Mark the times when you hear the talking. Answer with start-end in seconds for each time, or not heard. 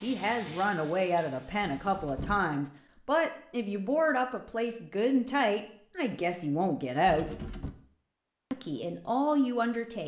0.0-7.3, 8.5-10.0.